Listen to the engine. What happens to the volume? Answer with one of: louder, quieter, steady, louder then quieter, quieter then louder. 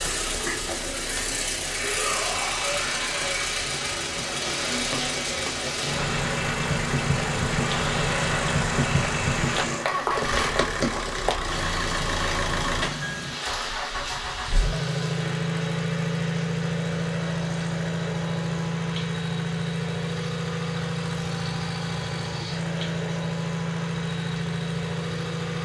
steady.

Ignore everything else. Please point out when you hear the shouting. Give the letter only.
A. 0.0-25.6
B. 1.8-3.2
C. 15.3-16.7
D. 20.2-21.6
B.